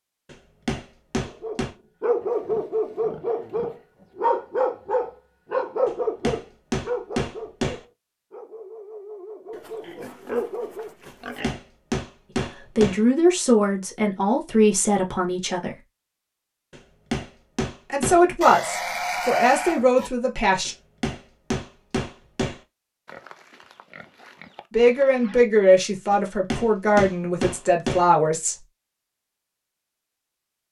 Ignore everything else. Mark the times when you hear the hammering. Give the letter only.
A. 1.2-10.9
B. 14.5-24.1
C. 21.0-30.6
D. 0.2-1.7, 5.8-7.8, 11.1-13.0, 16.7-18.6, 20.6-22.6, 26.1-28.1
D.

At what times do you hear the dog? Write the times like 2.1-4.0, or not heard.
1.2-10.9.